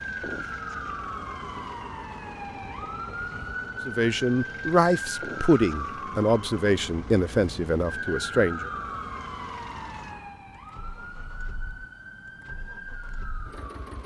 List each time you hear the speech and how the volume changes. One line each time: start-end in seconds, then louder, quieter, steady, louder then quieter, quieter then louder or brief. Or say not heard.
3.9-8.7 quieter.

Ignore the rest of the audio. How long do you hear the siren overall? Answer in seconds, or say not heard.
14 s.